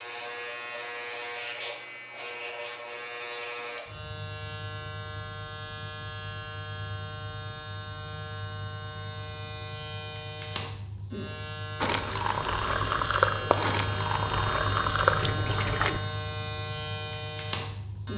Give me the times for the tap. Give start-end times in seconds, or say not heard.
11.8-16.0.